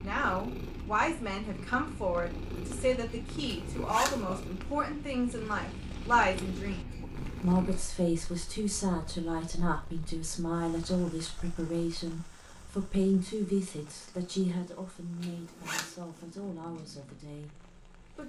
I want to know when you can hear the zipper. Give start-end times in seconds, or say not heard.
3.5-4.2, 15.2-15.9.